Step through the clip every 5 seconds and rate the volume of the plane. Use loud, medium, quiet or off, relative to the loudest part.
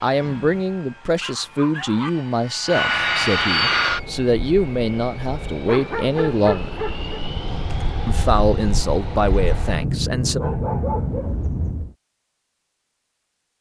loud, medium, loud.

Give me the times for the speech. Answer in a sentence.
The speech can be heard from 0.0 to 6.8 s and from 8.1 to 10.4 s.